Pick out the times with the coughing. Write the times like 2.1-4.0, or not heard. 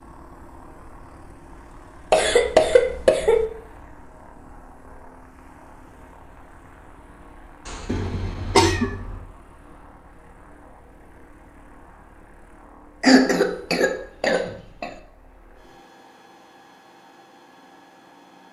2.1-3.5, 7.8-8.9, 13.0-14.9.